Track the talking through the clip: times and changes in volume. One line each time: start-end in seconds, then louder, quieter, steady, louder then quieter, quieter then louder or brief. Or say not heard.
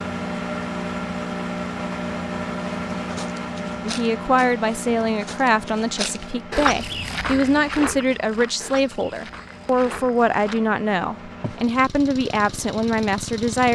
3.9-13.6 steady.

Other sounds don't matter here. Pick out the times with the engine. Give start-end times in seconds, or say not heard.
0.0-13.6.